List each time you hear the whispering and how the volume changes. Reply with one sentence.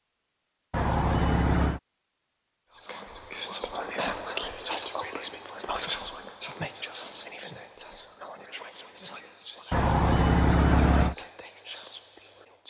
You can hear the whispering from 2.8 to 12.6 s, getting quieter.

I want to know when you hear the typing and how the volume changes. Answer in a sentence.
You can't hear the typing here.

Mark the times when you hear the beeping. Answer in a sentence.
You can hear the beeping from 0.7 to 1.8 s and from 9.7 to 11.2 s.